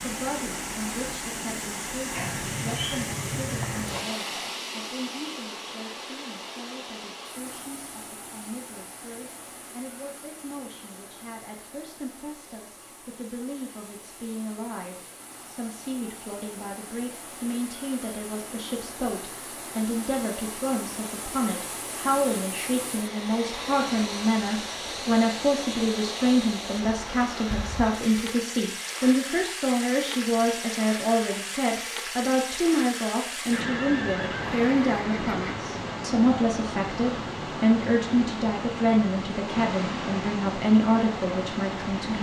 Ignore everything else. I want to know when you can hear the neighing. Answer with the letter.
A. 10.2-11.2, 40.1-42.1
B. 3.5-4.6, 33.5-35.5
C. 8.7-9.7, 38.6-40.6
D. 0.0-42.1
B.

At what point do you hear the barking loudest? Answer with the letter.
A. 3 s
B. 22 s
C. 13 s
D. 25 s
A.